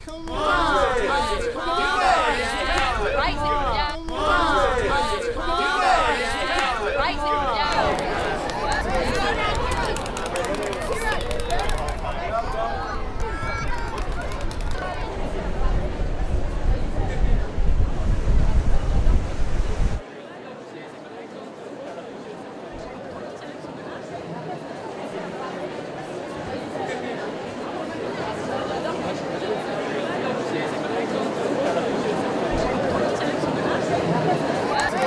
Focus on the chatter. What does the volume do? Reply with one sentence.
The volume of the chatter goes down, then up.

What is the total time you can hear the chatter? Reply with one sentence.
You can hear the chatter for 35 seconds altogether.